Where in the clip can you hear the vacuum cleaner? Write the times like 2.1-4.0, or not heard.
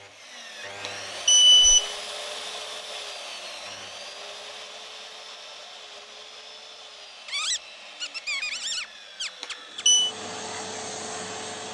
9.7-11.6.